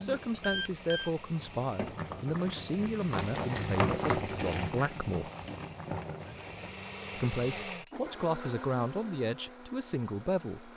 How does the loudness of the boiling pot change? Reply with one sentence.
The volume of the boiling pot goes up, then down.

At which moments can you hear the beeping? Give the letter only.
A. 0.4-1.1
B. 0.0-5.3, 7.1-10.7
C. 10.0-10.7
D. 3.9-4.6
A.